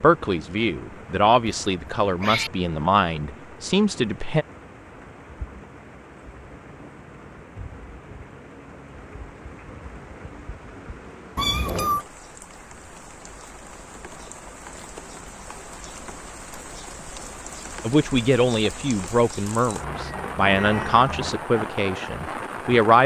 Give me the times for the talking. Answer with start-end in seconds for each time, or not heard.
0.0-4.5, 17.8-23.0.